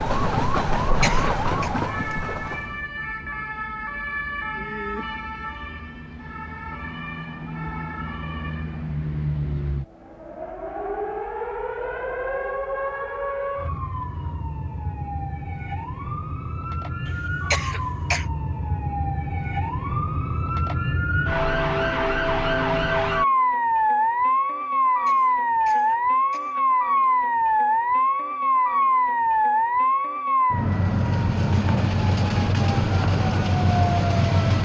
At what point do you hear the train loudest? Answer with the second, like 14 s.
1 s.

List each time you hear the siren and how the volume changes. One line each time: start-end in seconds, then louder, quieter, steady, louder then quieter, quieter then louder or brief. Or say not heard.
0.2-34.6 louder.